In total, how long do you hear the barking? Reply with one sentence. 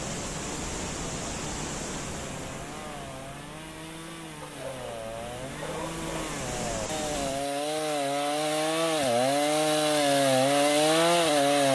The barking can be heard for 2 seconds in total.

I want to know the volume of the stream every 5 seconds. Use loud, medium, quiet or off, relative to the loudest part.
loud, loud, off.